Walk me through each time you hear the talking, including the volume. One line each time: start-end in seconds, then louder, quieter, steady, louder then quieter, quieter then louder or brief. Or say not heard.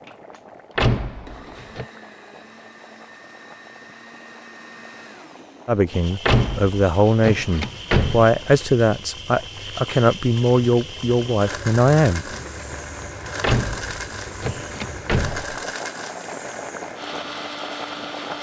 5.7-12.2 steady.